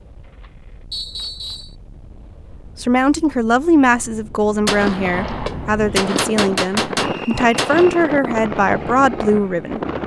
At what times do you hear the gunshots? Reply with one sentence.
You can hear the gunshots from 4.7 to 8.1 s.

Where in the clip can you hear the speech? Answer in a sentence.
The speech can be heard from 2.8 to 9.8 s.